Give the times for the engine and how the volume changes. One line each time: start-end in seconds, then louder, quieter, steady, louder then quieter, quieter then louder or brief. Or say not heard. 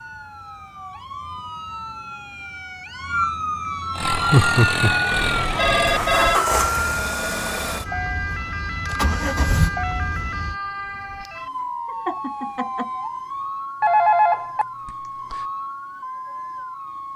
3.9-10.6 quieter then louder.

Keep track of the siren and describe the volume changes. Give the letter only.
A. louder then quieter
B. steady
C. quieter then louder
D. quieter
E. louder
A.